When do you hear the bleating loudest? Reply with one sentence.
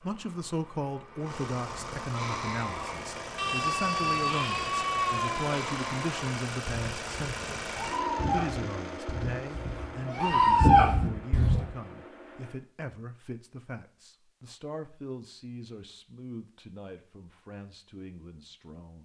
The volume of the bleating peaks at 11 seconds.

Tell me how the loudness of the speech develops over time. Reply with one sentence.
The volume of the speech goes down.